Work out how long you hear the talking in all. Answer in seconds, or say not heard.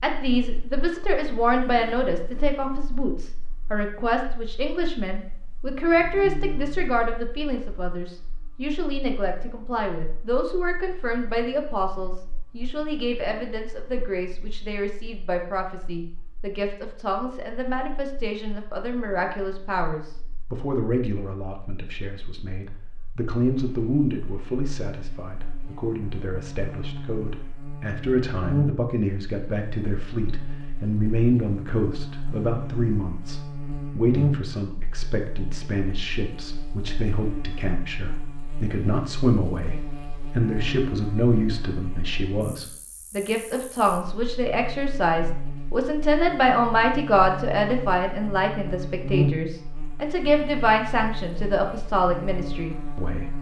53 s.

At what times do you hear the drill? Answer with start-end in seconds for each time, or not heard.
not heard.